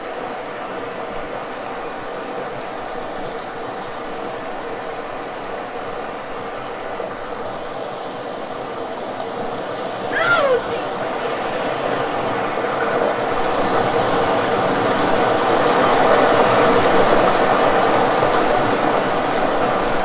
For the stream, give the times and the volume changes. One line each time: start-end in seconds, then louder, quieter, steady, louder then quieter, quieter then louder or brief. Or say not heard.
0.0-20.0 louder.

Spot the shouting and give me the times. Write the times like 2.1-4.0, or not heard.
10.1-10.8.